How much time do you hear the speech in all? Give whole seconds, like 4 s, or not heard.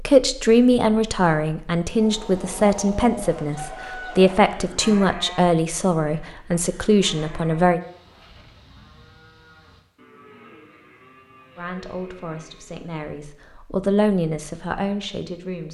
12 s.